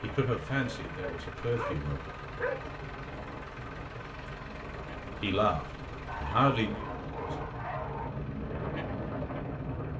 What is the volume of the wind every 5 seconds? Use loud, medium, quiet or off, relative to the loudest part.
medium, loud.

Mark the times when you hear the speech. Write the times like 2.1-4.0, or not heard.
0.0-2.1, 5.2-7.5.